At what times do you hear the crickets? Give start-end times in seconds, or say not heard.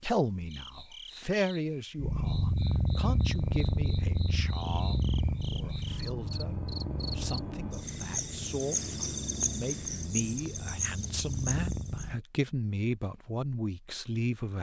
0.1-12.1.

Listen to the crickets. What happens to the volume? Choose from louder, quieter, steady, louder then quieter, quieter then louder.
louder.